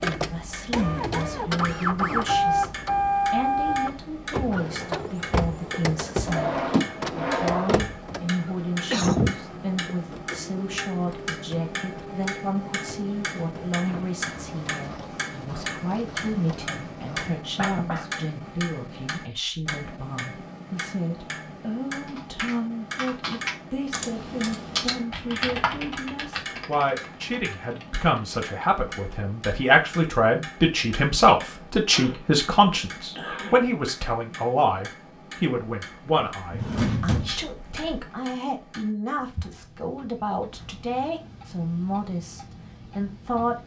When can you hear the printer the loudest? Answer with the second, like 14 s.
3 s.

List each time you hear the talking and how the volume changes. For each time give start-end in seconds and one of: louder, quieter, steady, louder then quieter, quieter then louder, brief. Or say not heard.
0.0-43.6 louder then quieter.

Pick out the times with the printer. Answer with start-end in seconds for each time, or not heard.
0.0-17.4.